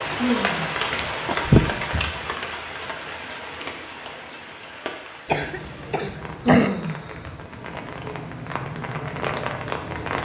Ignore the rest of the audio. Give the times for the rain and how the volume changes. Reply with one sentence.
You can hear the rain from 0.0 to 10.2 s, getting quieter then louder.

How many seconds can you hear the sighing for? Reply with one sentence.
You can hear the sighing for 2 seconds altogether.